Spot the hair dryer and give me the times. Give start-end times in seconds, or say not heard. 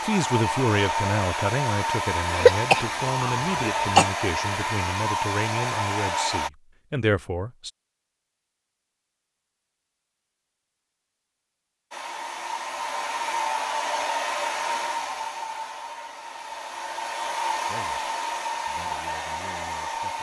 0.0-6.5, 11.9-20.1.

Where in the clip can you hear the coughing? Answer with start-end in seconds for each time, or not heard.
2.3-4.1.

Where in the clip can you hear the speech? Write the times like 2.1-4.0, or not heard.
0.0-7.7, 17.6-18.1, 18.6-20.1.